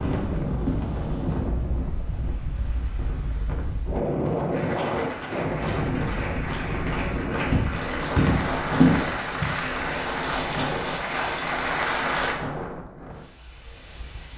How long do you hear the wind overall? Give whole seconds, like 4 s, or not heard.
14 s.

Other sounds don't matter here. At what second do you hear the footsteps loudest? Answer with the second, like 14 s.
9 s.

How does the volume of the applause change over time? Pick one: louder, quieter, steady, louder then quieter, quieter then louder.
louder.